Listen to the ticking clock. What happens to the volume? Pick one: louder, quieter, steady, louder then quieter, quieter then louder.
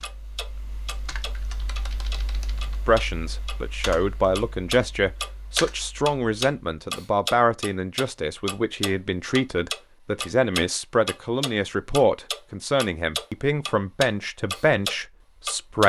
louder.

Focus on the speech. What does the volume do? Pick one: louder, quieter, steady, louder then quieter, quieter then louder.
steady.